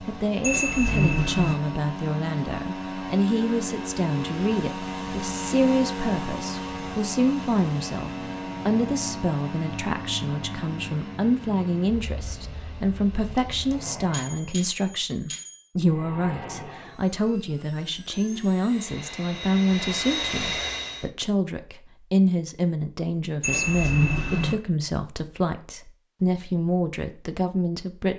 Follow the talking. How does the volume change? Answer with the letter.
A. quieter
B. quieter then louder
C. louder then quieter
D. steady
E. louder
D.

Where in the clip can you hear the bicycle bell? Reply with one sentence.
You can hear the bicycle bell from 0.4 to 1.6 s, from 13.3 to 15.6 s and from 23.4 to 24.6 s.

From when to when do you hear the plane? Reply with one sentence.
The plane can be heard from 0.0 to 14.6 s and from 15.8 to 21.1 s.